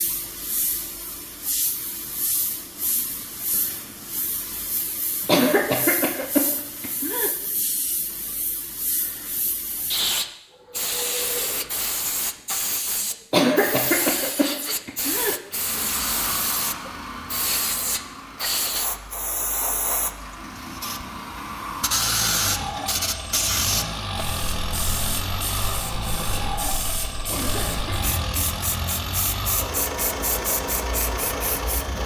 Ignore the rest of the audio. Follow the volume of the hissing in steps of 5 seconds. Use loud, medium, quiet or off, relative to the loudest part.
medium, medium, loud, loud, loud, medium, medium.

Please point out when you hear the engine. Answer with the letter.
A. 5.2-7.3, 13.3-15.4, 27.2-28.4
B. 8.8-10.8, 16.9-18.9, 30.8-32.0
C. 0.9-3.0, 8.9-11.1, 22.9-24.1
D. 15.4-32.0
D.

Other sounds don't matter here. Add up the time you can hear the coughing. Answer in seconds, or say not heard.
5 s.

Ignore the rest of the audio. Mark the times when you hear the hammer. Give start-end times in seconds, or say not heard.
not heard.